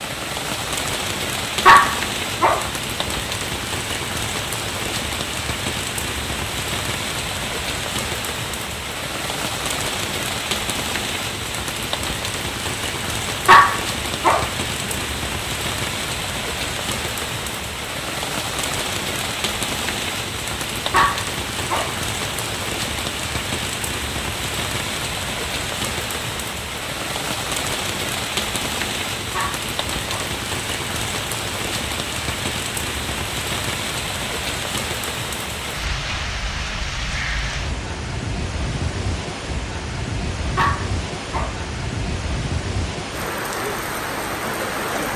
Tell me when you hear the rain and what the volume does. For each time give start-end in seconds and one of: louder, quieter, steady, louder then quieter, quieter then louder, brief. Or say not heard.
0.0-45.1 steady.